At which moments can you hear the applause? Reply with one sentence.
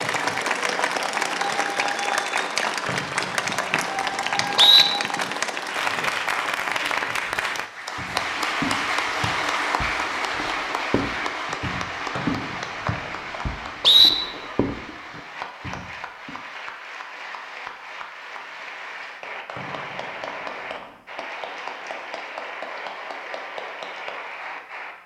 You can hear the applause from 0.0 to 24.9 s.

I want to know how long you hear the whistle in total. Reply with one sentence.
You can hear the whistle for 5 seconds altogether.